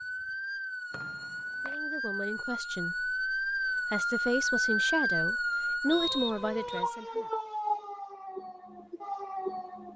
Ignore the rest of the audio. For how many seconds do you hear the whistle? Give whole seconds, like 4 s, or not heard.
2 s.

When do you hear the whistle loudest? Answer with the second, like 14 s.
6 s.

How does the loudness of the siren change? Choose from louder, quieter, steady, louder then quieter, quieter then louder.
louder then quieter.